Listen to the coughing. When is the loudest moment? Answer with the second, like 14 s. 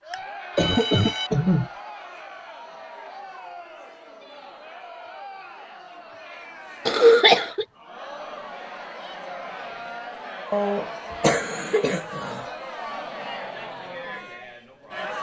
7 s.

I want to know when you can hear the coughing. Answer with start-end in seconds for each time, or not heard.
0.6-1.7, 6.8-7.7, 10.5-12.4.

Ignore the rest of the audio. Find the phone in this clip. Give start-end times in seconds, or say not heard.
0.1-1.3.